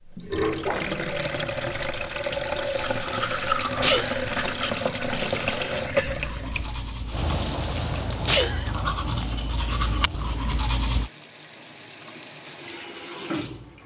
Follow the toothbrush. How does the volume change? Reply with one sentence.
The loudness of the toothbrush goes down, then up.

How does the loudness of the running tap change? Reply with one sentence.
The loudness of the running tap goes down.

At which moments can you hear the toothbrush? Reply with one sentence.
The toothbrush can be heard from 2.8 to 11.1 s.